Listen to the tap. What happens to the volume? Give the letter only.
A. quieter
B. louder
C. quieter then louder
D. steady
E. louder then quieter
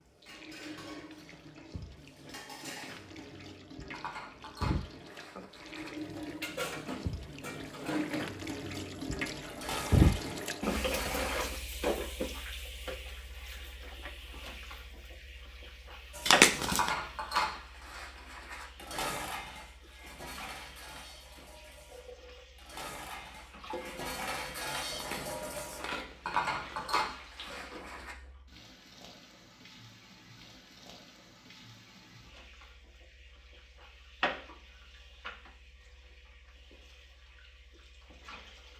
E.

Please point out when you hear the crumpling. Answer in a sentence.
The crumpling can be heard from 16.2 to 16.9 s and from 24.9 to 27.1 s.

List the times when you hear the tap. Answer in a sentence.
The tap can be heard from 0.0 to 38.7 s.